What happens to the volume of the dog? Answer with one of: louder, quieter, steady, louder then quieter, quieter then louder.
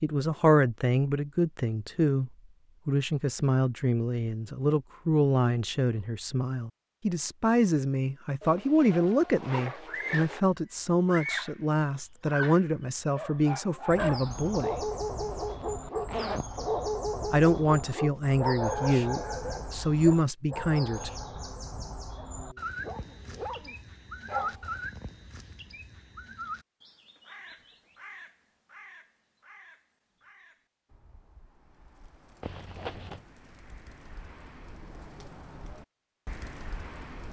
quieter.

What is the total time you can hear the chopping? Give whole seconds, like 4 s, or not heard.
not heard.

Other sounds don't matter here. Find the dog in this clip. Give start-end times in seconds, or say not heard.
13.2-24.8.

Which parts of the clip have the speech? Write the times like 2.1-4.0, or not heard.
0.0-14.8, 17.3-21.1.